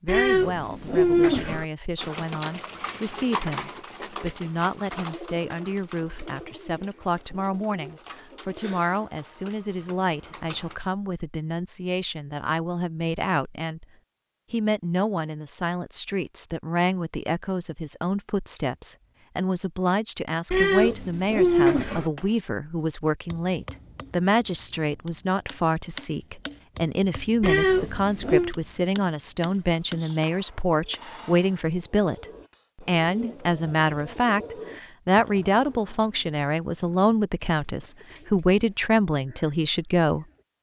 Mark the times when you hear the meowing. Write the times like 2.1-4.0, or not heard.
0.1-1.6, 20.5-22.1, 27.4-28.6.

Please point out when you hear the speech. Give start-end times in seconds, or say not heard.
0.0-13.8, 14.5-40.2.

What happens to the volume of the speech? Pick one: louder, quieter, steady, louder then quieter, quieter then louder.
louder.